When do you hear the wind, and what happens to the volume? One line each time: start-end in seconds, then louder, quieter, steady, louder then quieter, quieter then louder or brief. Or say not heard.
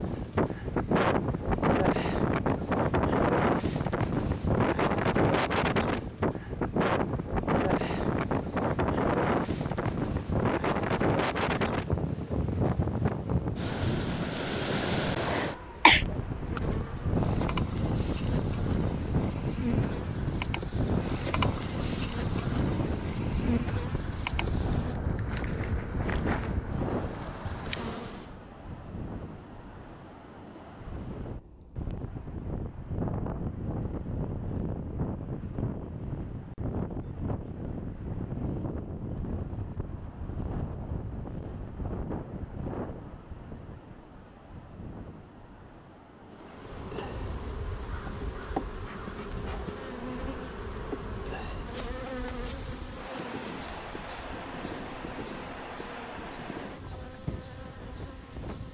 0.0-58.6 quieter.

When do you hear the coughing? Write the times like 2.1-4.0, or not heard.
15.3-16.1.